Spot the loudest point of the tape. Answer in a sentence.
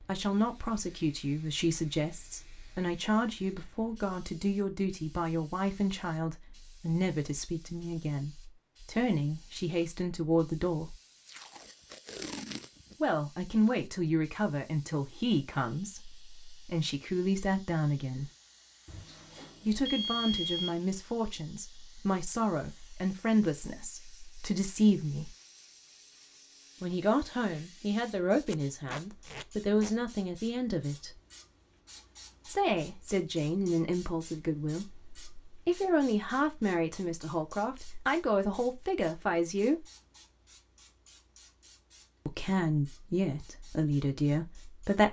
The volume of the tape peaks at 12 seconds.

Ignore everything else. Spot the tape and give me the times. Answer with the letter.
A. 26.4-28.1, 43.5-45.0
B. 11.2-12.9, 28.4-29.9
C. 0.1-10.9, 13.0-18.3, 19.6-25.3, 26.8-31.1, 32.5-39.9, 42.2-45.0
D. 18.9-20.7
B.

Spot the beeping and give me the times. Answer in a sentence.
You can hear the beeping from 18.9 to 20.7 s.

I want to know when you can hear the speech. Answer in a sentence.
The speech can be heard from 0.1 to 10.9 s, from 13.0 to 18.3 s, from 19.6 to 25.3 s, from 26.8 to 31.1 s, from 32.5 to 39.9 s and from 42.2 to 45.0 s.